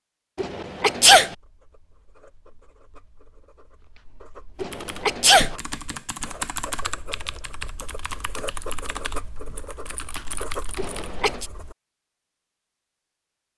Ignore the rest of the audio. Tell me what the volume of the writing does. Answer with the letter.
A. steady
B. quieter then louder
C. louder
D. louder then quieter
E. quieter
C.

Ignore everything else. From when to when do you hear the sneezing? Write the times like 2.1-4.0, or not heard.
0.3-1.4, 4.6-5.5, 10.8-11.5.